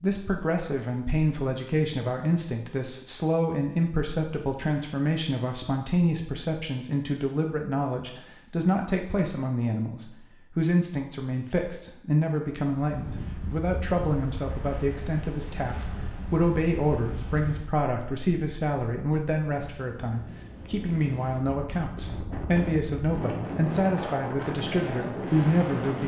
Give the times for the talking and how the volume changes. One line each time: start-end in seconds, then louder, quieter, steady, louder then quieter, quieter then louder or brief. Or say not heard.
0.0-26.0 steady.